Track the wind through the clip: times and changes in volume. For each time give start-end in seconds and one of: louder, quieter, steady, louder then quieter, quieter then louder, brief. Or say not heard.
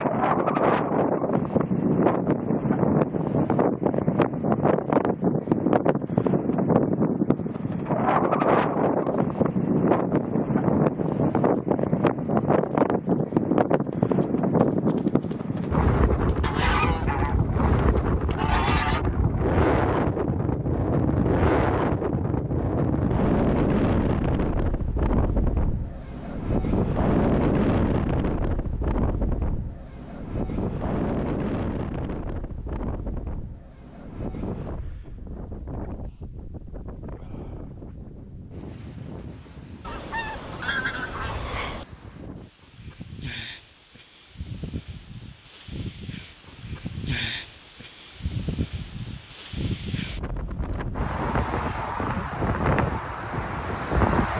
0.0-54.3 quieter then louder.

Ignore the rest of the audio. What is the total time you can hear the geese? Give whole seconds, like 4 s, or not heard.
5 s.